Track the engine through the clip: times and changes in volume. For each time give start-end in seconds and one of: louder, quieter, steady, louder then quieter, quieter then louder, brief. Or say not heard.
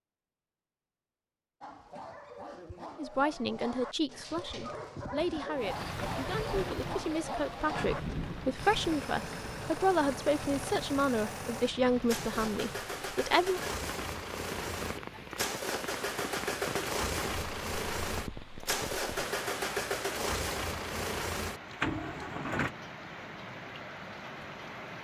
8.6-22.8 louder.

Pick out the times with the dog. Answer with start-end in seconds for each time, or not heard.
1.6-8.2.